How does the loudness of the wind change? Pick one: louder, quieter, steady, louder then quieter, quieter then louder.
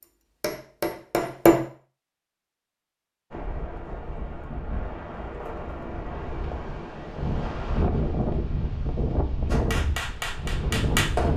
louder.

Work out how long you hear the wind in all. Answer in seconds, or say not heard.
8 s.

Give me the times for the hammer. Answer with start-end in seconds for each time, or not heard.
0.0-1.6, 9.4-11.3.